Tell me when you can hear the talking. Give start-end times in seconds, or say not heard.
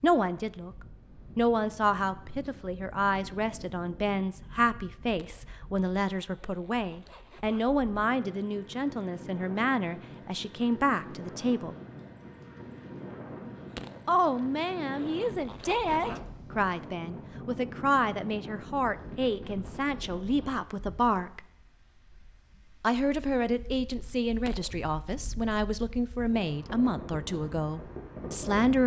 0.0-0.7, 1.4-11.8, 14.1-21.4, 22.8-28.8.